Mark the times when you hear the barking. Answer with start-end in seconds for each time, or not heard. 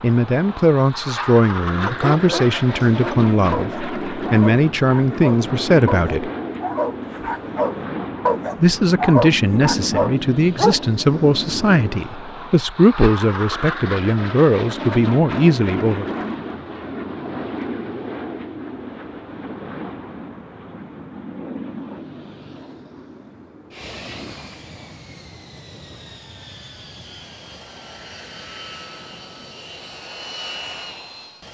1.8-10.8.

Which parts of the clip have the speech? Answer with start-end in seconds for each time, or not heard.
0.0-6.3, 8.6-16.1.